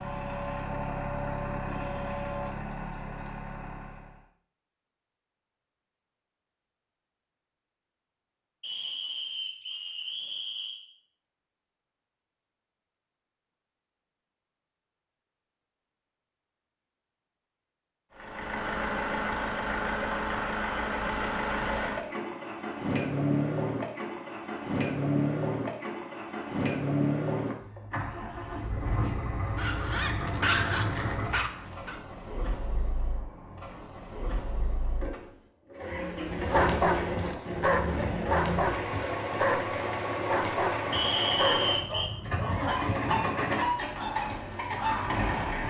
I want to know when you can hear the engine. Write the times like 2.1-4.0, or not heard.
0.0-4.2, 18.1-45.6.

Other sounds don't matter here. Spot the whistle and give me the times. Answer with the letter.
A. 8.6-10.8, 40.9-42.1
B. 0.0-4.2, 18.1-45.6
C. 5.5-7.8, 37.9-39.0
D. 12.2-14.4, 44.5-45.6
A.